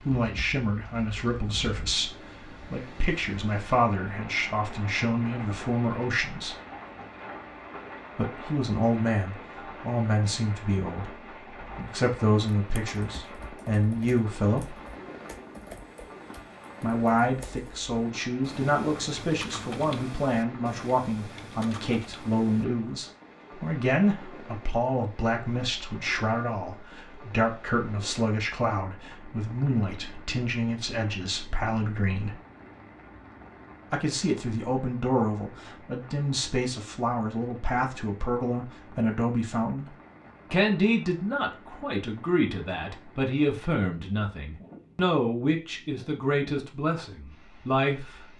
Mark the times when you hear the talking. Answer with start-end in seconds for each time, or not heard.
0.0-6.5, 8.2-14.8, 16.8-32.4, 33.9-48.3.